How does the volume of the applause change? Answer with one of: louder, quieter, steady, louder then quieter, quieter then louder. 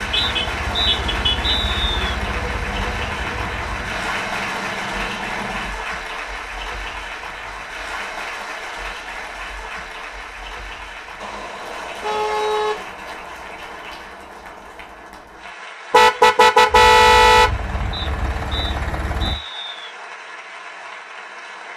quieter.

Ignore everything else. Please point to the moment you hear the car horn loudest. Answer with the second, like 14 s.
17 s.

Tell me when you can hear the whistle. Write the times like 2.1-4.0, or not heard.
0.1-2.1, 17.9-19.9.